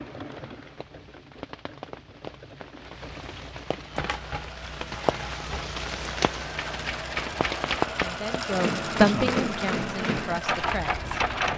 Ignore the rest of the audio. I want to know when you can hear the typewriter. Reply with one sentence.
The typewriter can be heard from 3.9 to 11.5 s.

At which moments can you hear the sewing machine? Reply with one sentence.
The sewing machine can be heard from 0.0 to 11.5 s.